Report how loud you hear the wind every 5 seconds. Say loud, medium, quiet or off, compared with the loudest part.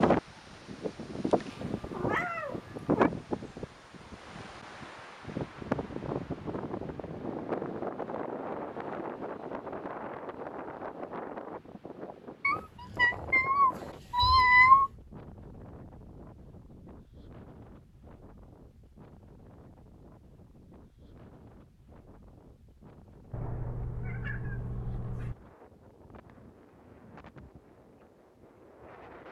loud, loud, medium, quiet, quiet, quiet.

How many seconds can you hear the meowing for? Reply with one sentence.
You can hear the meowing for 6 seconds altogether.